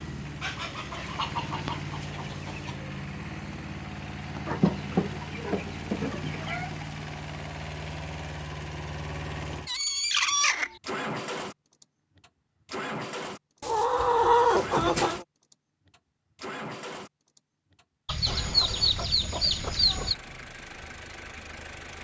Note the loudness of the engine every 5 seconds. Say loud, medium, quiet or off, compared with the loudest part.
loud, loud, loud, medium, medium.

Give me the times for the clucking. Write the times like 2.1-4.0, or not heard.
0.4-2.8, 4.5-6.8, 9.7-10.8, 13.6-15.2, 18.1-20.1.